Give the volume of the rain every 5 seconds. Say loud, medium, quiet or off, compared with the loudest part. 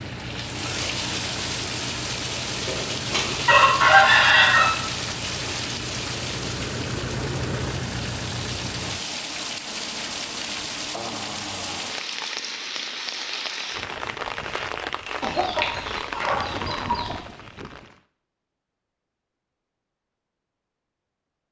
loud, loud, loud, loud, off.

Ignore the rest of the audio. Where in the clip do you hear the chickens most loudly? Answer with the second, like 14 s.
4 s.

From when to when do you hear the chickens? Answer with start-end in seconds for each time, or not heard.
2.6-4.7, 15.2-17.1.